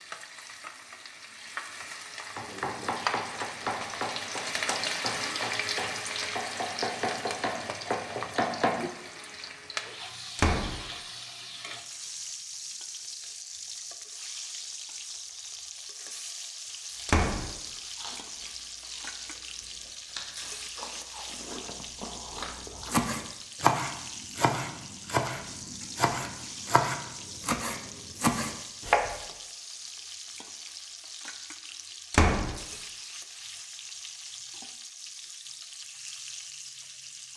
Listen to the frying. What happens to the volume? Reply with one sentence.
The loudness of the frying goes down.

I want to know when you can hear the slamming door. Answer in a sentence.
The slamming door can be heard from 10.3 to 10.8 s, from 17.1 to 17.5 s and from 32.1 to 32.5 s.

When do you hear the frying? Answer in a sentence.
You can hear the frying from 0.0 to 37.3 s.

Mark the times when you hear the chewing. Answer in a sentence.
The chewing can be heard from 16.9 to 23.1 s.